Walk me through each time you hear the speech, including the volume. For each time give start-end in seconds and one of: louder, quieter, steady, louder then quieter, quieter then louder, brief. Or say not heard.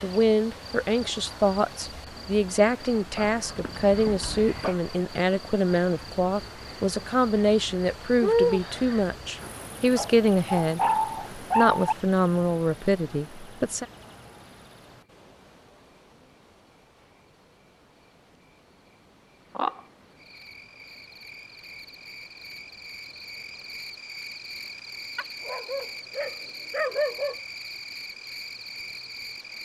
0.0-13.8 steady.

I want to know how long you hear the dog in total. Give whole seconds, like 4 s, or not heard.
6 s.